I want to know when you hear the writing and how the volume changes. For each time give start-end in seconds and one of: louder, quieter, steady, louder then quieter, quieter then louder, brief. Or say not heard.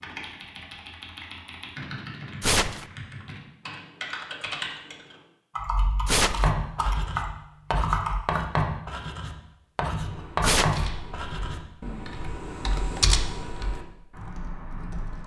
6.3-11.7 louder.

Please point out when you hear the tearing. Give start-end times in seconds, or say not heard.
2.4-2.9, 6.0-6.5, 10.4-10.8.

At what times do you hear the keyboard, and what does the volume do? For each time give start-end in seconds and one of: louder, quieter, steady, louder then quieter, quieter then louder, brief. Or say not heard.
0.0-8.2 louder
9.9-15.2 louder then quieter.